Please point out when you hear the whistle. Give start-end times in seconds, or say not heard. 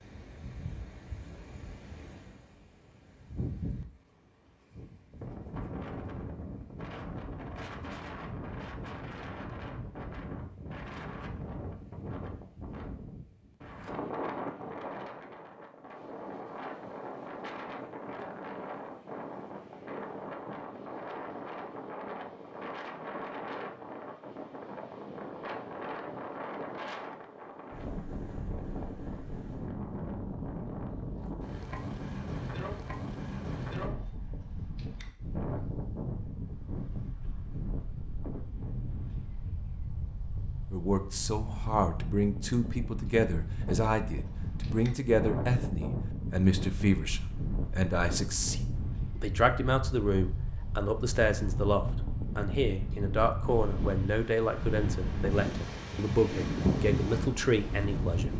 not heard.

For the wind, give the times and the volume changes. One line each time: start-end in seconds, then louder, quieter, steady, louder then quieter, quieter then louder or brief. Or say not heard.
0.0-58.3 louder.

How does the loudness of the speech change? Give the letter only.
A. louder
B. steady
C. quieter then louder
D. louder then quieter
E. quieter
B.